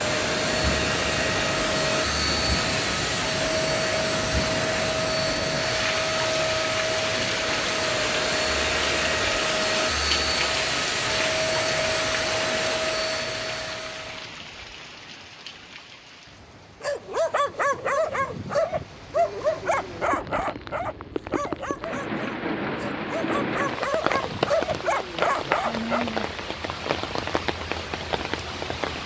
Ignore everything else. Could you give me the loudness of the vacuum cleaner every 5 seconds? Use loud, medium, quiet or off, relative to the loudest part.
loud, loud, loud, off, off, off.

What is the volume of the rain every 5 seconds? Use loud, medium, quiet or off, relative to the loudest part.
loud, loud, loud, quiet, loud, loud.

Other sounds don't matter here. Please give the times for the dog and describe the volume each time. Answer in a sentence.
You can hear the dog from 16.8 to 26.1 s, getting quieter then louder.